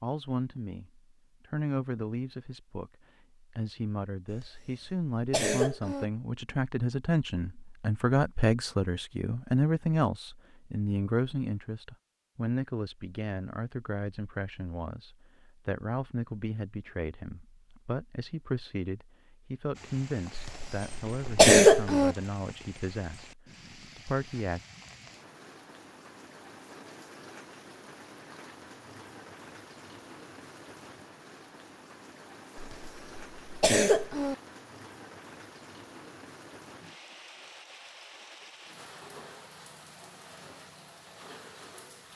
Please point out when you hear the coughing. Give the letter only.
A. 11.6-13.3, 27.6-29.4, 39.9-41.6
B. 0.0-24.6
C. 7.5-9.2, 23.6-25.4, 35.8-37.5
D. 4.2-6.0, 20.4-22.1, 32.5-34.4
D.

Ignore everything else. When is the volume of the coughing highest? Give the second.
22 s.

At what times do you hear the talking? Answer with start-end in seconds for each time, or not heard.
0.0-24.6.